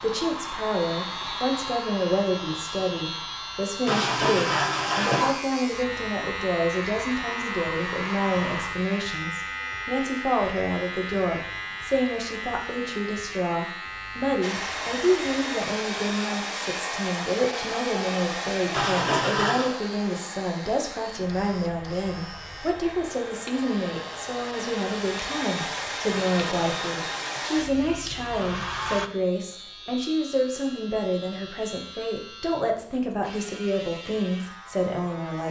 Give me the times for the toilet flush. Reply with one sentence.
You can hear the toilet flush from 3.9 to 5.4 s, from 18.7 to 19.8 s and from 26.3 to 27.5 s.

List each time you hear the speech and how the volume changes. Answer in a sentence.
The speech can be heard from 0.0 to 35.4 s, at a steady volume.